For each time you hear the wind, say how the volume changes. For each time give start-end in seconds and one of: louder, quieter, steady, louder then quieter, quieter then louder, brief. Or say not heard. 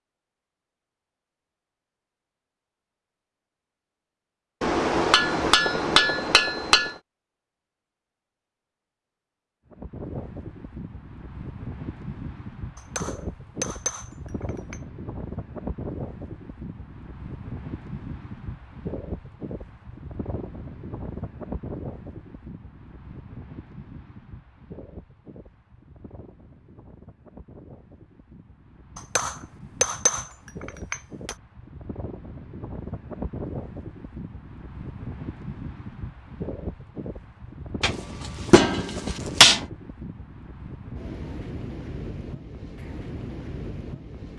9.7-44.3 quieter then louder.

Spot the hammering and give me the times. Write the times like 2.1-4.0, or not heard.
4.6-7.0, 12.8-14.8, 28.9-31.4, 37.8-39.6.